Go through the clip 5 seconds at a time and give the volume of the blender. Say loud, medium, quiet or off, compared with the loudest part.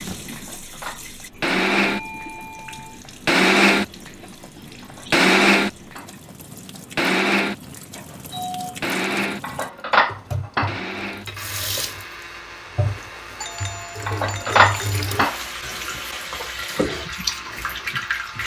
loud, loud, quiet, quiet.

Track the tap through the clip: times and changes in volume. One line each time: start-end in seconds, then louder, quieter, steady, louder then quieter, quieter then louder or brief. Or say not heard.
0.0-18.4 louder.